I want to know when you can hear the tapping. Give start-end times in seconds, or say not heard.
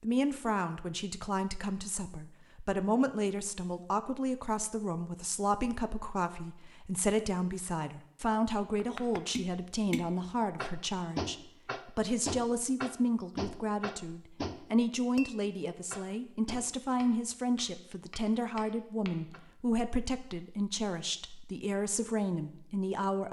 8.8-19.4.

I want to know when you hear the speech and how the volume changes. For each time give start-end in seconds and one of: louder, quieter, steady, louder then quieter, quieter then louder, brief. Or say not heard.
0.0-23.2 steady.